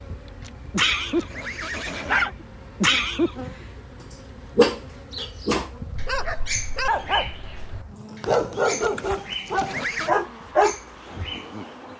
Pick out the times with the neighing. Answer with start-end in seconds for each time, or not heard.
0.4-2.4, 8.8-10.2.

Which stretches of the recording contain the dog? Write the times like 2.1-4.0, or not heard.
0.7-11.3.